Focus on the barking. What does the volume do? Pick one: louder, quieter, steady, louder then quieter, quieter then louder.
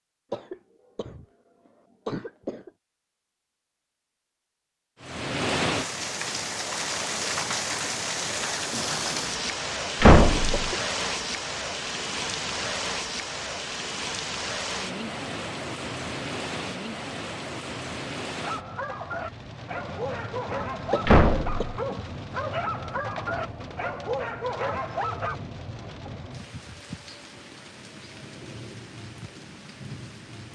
steady.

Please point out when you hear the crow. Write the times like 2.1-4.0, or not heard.
not heard.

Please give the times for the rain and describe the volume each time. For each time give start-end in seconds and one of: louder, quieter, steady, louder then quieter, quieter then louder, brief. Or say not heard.
5.0-30.5 quieter.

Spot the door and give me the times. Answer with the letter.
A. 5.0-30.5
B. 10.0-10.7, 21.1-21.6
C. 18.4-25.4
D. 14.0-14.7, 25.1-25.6
B.